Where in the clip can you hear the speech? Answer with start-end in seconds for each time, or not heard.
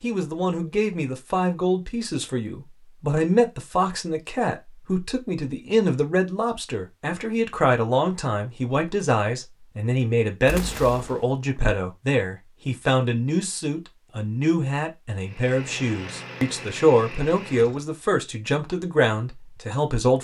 0.0-20.1.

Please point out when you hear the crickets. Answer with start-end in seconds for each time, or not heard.
not heard.